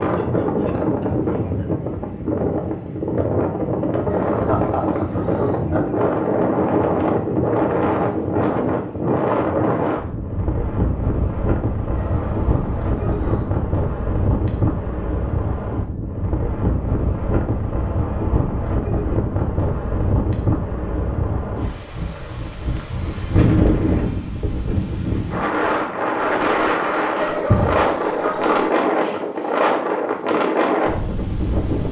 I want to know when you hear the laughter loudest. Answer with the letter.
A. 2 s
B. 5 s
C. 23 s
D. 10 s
B.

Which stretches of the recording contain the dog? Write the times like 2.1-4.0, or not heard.
4.1-5.6, 11.9-13.5, 27.1-28.7.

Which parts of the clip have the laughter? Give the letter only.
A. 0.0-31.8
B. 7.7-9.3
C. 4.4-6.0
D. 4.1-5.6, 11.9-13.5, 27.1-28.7
C.